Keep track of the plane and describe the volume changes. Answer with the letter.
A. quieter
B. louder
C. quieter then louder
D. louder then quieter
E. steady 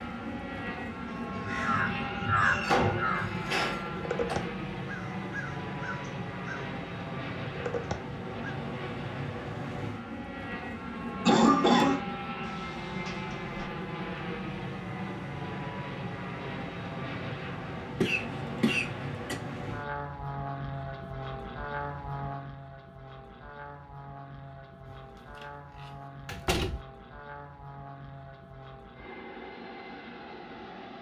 A.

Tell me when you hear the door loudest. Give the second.
3 s.